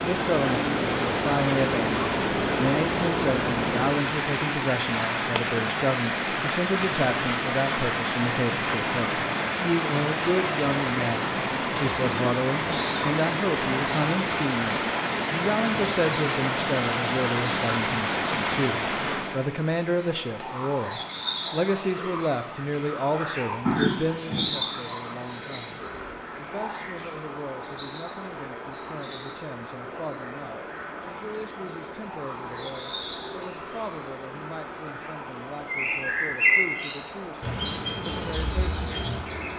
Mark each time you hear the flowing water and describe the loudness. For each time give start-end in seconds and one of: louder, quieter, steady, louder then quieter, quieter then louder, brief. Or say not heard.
0.0-39.5 quieter.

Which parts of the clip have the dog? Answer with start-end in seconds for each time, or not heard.
not heard.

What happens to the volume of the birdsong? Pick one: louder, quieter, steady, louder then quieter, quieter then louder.
louder then quieter.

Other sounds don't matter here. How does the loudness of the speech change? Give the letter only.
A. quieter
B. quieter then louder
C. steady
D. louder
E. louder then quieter
A.